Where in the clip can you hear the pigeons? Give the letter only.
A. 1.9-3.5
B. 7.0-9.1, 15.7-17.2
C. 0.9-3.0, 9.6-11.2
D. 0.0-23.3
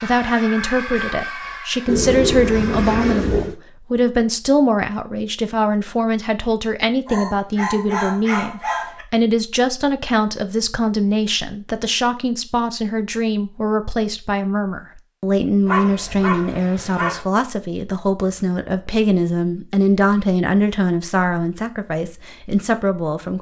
A.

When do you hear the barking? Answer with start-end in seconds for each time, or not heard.
7.0-9.1, 15.7-17.2.